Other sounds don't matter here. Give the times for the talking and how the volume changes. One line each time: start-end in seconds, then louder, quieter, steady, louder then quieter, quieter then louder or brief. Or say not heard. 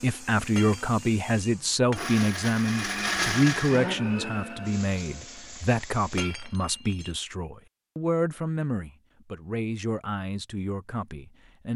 0.0-11.7 quieter.